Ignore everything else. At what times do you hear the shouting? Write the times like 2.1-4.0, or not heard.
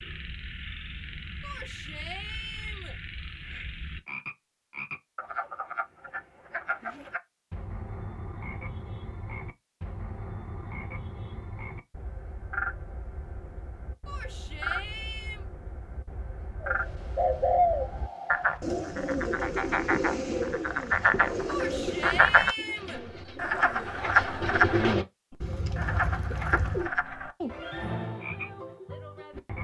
1.4-3.0, 14.1-15.4, 21.4-23.0.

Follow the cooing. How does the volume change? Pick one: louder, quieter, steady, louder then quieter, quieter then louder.
quieter then louder.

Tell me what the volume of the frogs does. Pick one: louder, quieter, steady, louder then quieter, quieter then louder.
louder.